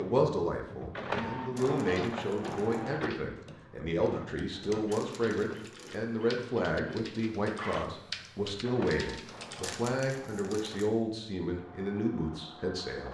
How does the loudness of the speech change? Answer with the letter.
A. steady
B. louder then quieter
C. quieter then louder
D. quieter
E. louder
A.